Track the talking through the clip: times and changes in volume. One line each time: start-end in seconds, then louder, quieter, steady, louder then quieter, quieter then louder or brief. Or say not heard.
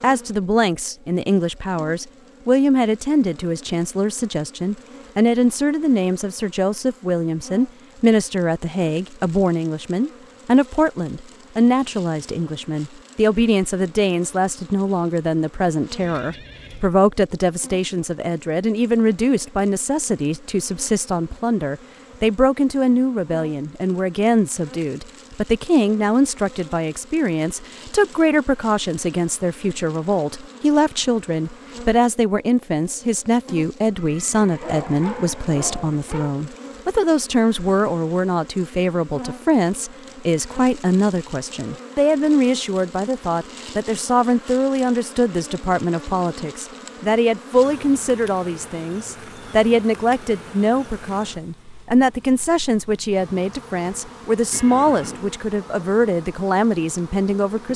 0.0-57.7 steady.